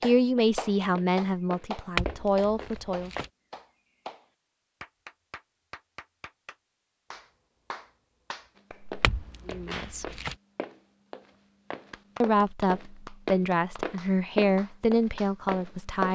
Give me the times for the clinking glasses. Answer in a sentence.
The clinking glasses can be heard from 1.9 to 3.3 s and from 9.0 to 10.3 s.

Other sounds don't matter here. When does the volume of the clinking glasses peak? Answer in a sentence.
The loudest moment of the clinking glasses is at 2 seconds.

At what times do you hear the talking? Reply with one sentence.
The talking can be heard from 0.0 to 3.1 s, from 9.4 to 10.1 s and from 12.2 to 16.1 s.